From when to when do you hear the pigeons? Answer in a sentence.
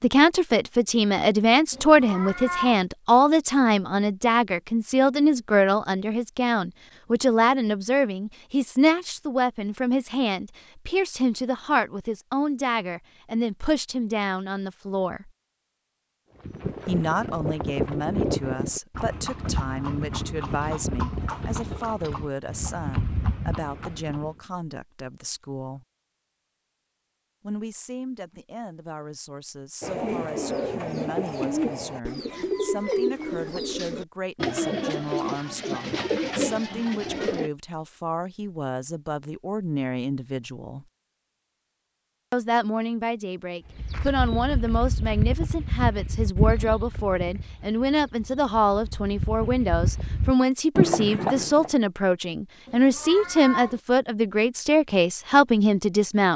You can hear the pigeons from 29.8 to 37.5 s.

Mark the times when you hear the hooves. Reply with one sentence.
The hooves can be heard from 16.4 to 24.4 s and from 43.8 to 51.7 s.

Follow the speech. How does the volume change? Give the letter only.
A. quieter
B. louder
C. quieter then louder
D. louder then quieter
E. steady
C.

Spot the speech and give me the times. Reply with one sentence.
The speech can be heard from 0.0 to 15.3 s, from 16.9 to 25.9 s, from 27.4 to 40.9 s and from 42.3 to 56.3 s.